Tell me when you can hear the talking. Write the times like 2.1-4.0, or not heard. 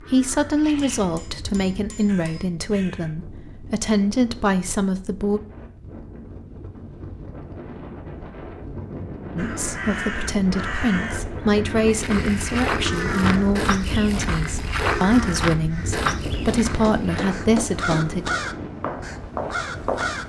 0.1-5.4, 9.3-18.3.